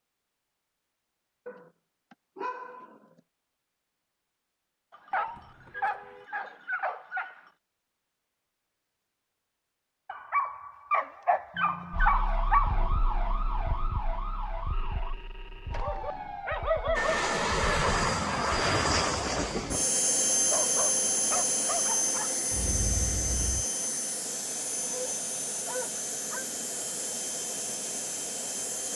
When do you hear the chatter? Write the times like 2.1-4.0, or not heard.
not heard.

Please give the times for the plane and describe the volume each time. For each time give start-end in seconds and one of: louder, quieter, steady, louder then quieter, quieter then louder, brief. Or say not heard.
16.9-28.9 quieter.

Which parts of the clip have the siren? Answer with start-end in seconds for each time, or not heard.
11.9-18.5.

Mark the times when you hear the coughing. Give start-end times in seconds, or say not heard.
not heard.